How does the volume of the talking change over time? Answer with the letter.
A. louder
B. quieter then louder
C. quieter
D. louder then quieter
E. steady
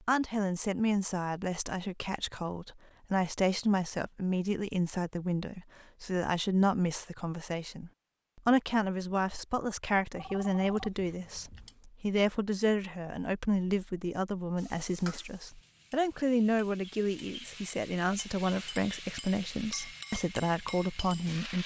E.